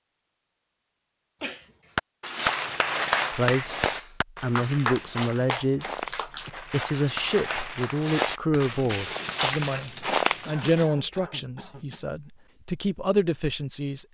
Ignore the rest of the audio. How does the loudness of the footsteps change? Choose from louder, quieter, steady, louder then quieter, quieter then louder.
quieter then louder.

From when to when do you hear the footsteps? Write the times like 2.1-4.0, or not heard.
2.4-10.9.